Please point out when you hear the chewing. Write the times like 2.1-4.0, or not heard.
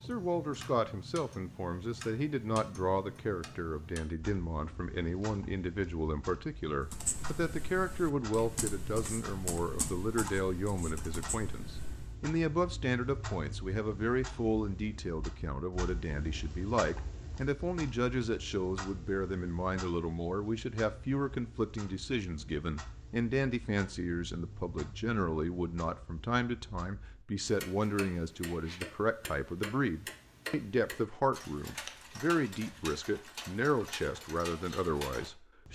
not heard.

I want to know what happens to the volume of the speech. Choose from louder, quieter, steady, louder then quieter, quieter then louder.
steady.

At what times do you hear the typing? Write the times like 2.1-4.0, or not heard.
6.8-12.2.